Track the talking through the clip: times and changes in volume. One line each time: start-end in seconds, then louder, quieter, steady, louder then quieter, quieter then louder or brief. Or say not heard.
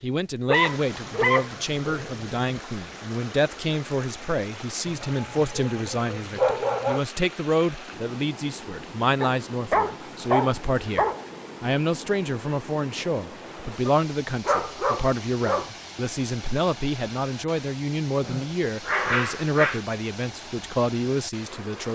0.0-21.8 steady.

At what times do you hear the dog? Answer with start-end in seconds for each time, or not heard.
0.5-2.4, 4.8-7.0, 9.2-11.2, 13.8-15.7, 18.2-19.8.